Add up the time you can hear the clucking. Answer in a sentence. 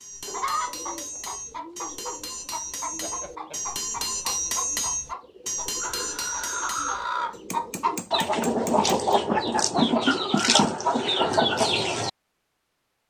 You can hear the clucking for 12 seconds altogether.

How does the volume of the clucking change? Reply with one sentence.
The loudness of the clucking goes up.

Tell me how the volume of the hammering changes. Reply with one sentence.
The loudness of the hammering goes up, then down.